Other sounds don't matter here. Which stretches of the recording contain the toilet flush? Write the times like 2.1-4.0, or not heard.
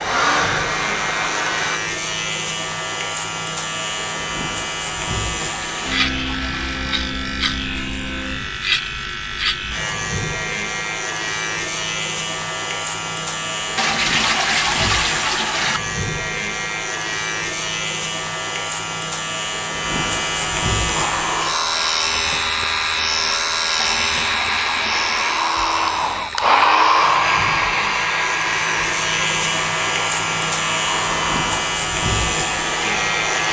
5.3-7.1, 13.8-15.8, 23.8-25.4.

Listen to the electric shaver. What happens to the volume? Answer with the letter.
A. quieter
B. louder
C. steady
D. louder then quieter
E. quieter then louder
C.